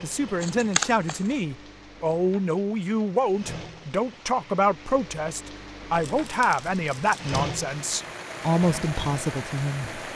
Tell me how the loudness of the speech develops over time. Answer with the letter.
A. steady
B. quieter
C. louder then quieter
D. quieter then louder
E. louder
A.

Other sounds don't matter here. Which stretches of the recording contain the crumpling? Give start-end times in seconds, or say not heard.
0.4-1.4, 5.9-7.3.